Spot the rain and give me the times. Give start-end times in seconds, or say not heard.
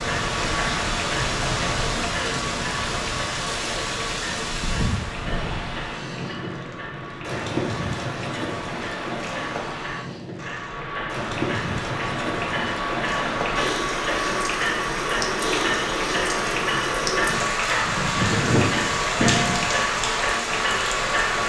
0.0-21.4.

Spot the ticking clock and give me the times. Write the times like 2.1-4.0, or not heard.
0.0-21.4.